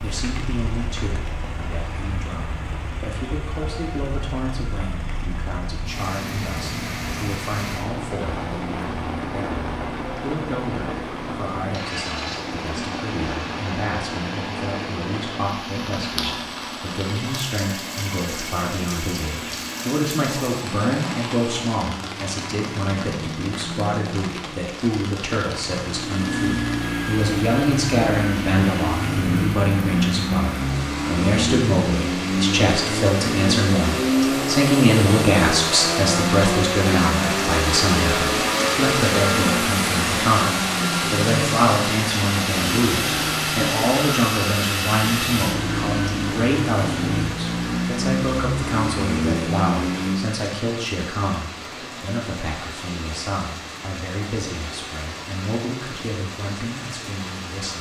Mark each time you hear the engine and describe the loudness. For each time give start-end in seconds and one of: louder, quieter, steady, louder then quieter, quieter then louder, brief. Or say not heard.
0.0-50.2 louder.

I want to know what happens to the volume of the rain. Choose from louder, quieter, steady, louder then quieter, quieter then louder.
louder then quieter.